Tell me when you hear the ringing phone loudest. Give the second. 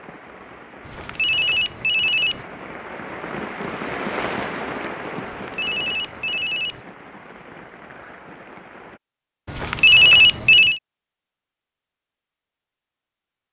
10 s.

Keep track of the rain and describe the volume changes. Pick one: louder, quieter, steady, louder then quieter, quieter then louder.
louder then quieter.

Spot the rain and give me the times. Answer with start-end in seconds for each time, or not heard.
0.0-9.0.